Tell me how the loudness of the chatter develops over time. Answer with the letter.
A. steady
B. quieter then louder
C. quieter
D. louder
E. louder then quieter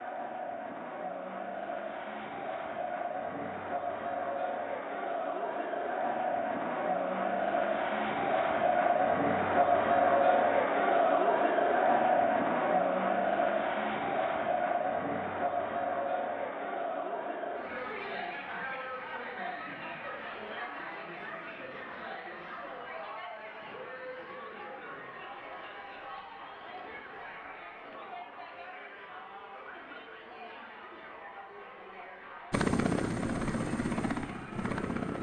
E.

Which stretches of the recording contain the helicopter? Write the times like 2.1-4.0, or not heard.
32.5-35.1.